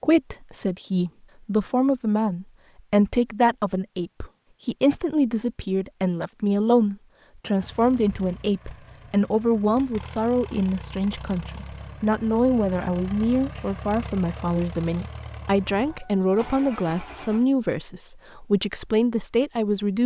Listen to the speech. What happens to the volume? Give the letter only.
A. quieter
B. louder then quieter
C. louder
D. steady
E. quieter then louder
D.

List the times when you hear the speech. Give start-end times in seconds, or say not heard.
0.0-20.0.